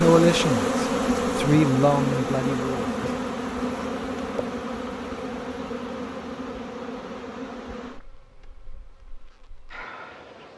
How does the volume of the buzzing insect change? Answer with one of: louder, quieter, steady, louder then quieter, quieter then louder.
quieter.